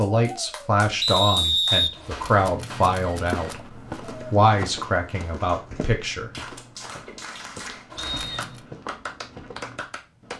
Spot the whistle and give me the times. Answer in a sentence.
The whistle can be heard from 1.0 to 1.9 s and from 8.0 to 8.7 s.